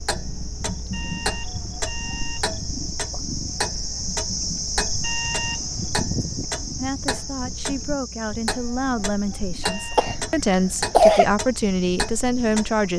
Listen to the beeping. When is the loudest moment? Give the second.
5 s.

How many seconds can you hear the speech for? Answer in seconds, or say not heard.
6 s.